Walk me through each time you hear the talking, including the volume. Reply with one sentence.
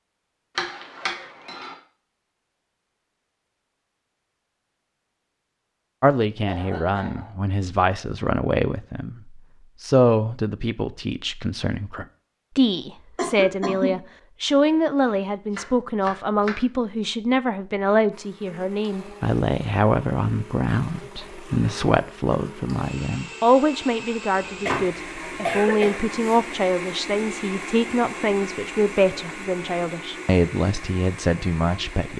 You can hear the talking from 6.0 to 32.1 s, at a steady volume.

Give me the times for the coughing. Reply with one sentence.
The coughing can be heard from 6.5 to 7.3 s, from 13.2 to 14.0 s and from 24.6 to 26.4 s.